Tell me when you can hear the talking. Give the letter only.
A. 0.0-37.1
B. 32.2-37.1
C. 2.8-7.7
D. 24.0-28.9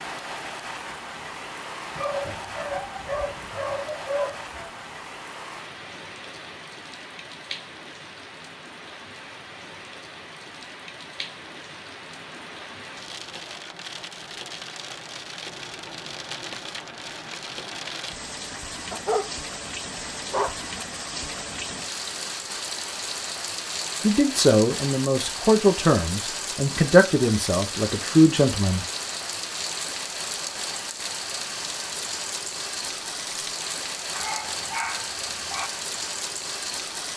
D.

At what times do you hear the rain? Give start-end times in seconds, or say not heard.
0.0-37.1.